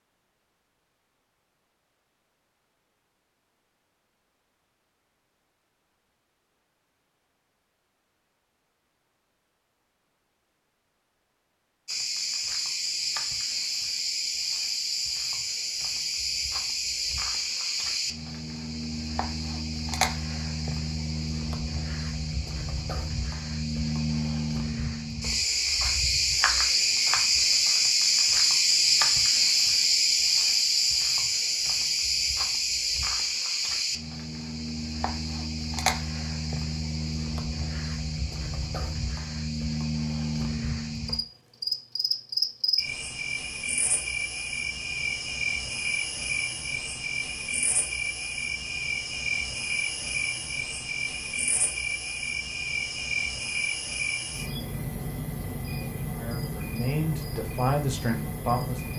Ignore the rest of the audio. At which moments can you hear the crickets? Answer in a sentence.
You can hear the crickets from 11.8 to 58.9 s.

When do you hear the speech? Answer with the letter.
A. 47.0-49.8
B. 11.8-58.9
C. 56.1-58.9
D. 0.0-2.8
C.